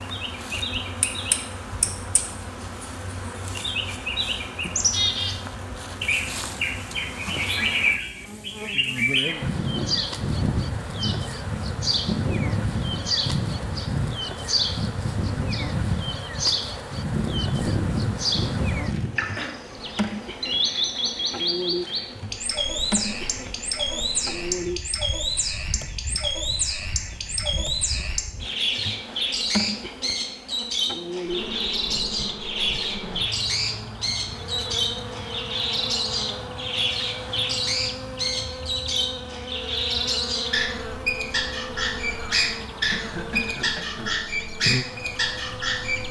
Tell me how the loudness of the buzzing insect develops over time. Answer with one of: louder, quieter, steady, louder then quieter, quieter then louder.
steady.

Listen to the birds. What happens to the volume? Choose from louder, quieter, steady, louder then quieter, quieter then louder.
steady.